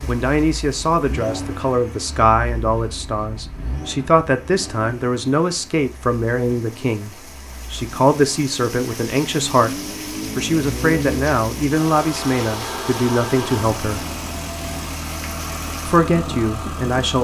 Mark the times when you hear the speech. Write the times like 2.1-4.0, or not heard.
0.1-14.1, 15.8-17.1.